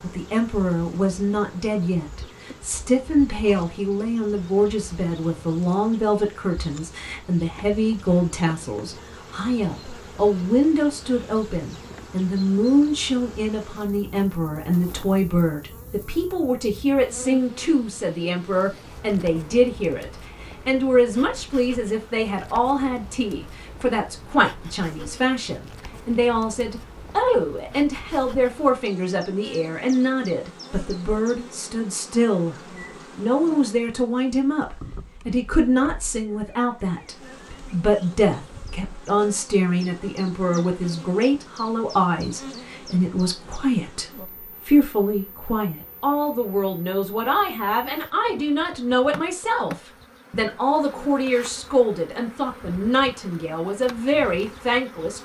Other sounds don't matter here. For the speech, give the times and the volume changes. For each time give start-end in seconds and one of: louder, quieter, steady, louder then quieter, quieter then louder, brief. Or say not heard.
0.0-32.5 steady
33.1-55.2 steady.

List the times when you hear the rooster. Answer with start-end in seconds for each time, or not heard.
not heard.